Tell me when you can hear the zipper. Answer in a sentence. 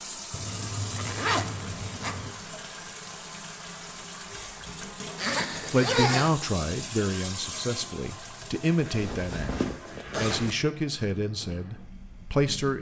You can hear the zipper from 0.3 to 2.4 s, from 5.2 to 6.3 s and from 8.8 to 10.6 s.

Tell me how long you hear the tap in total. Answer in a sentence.
The tap can be heard for 13 seconds in total.